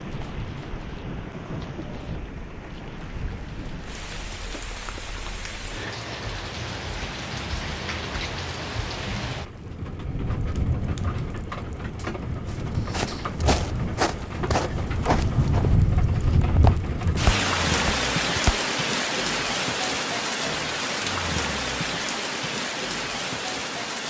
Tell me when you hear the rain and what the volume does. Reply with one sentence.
The rain can be heard from 0.0 to 24.0 s, getting louder.